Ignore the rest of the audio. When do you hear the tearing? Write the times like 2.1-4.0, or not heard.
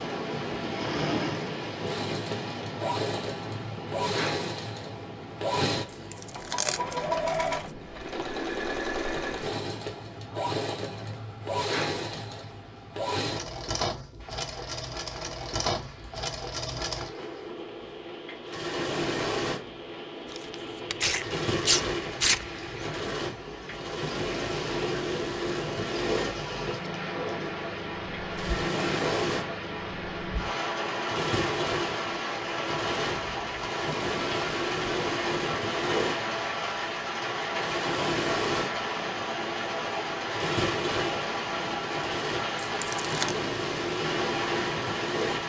5.9-7.5, 20.3-22.4, 42.5-43.4.